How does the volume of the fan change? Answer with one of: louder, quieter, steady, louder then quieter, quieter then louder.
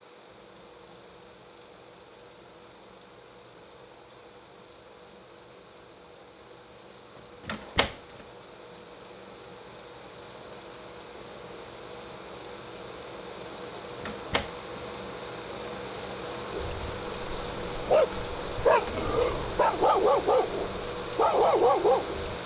louder.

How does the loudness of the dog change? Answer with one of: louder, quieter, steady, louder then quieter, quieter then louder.
louder.